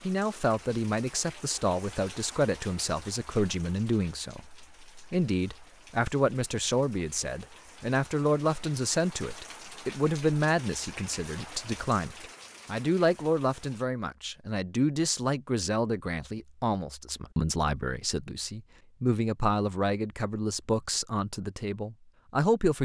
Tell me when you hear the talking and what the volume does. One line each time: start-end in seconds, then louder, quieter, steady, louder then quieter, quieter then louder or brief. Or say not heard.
0.0-22.7 steady.